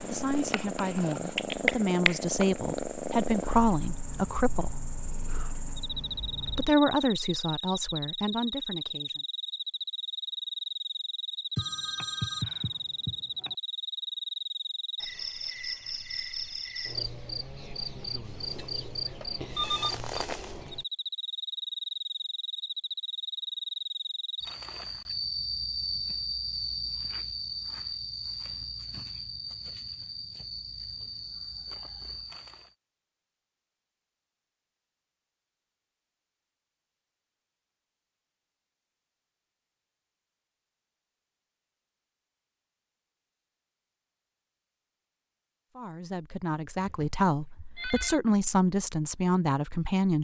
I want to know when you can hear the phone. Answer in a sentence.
The phone can be heard from 11.6 to 13.6 s, from 19.2 to 20.0 s and from 46.8 to 48.2 s.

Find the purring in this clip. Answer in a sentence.
The purring can be heard from 0.0 to 6.8 s.